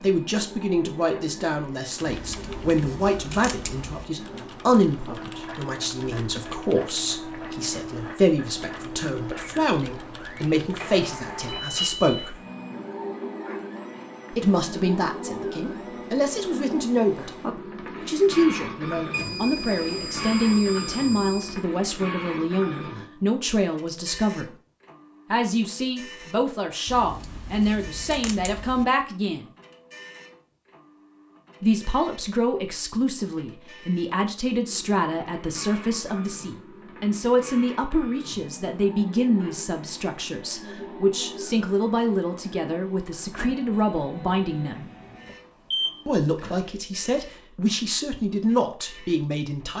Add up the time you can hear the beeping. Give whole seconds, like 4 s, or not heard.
5 s.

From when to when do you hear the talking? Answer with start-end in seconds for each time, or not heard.
0.0-12.3, 14.3-17.4, 18.1-24.5, 25.3-29.5, 31.6-44.9, 46.0-49.7.